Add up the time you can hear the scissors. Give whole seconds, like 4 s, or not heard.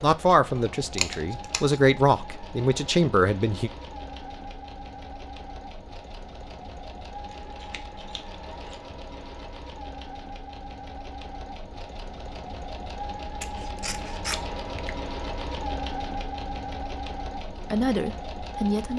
4 s.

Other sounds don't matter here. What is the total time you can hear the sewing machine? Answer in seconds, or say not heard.
19 s.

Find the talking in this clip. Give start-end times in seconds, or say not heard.
0.0-3.7, 17.5-18.9.